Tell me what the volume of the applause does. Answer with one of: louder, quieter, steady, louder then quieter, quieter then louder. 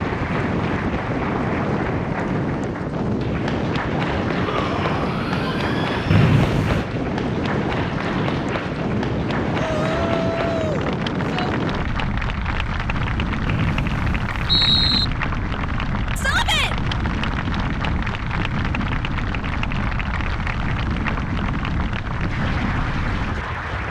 steady.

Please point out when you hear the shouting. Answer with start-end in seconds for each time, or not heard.
4.3-6.3, 9.6-11.6, 16.1-16.8.